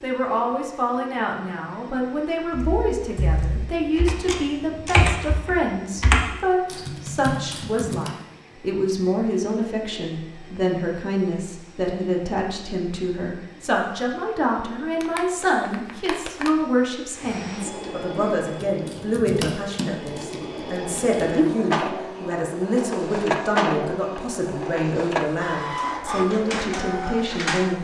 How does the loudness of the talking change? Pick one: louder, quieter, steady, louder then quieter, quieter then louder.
steady.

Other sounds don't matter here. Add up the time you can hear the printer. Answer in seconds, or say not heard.
28 s.